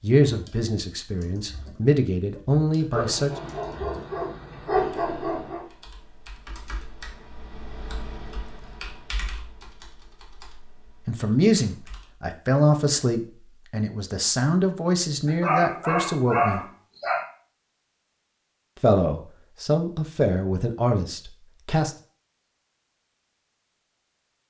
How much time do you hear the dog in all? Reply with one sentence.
You can hear the dog for 5 seconds altogether.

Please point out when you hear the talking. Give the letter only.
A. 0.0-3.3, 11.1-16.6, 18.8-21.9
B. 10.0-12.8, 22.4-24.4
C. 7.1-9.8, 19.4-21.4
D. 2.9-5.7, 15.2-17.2
A.